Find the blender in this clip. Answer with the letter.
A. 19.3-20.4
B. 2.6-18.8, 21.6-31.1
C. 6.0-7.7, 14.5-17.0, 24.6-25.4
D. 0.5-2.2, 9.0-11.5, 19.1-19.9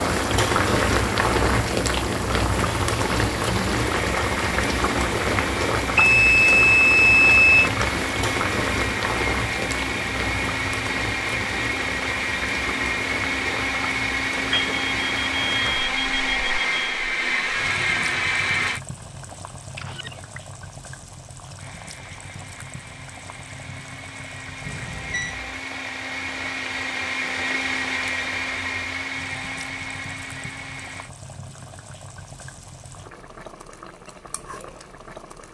B.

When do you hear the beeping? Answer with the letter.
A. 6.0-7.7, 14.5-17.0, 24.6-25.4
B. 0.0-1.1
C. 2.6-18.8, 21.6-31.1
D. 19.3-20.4
A.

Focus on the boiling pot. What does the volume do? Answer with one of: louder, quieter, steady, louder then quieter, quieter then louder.
quieter.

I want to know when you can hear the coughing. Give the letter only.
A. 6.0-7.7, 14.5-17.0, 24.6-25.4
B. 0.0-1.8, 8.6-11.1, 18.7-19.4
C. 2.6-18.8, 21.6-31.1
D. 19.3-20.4
D.